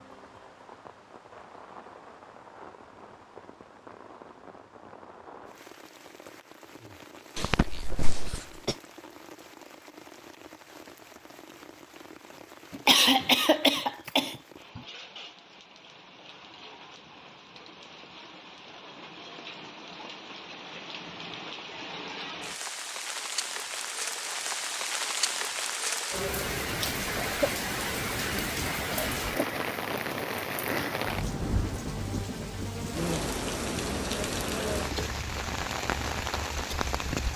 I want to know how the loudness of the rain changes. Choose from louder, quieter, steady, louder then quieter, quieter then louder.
louder.